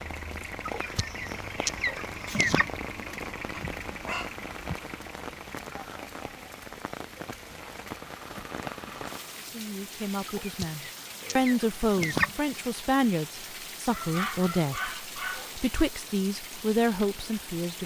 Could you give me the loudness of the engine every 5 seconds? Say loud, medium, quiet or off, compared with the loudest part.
loud, medium, off, off.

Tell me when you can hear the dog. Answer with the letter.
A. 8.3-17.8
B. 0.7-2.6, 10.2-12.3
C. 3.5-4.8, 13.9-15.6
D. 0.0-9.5
C.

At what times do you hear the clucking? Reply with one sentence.
You can hear the clucking from 0.7 to 2.6 s and from 10.2 to 12.3 s.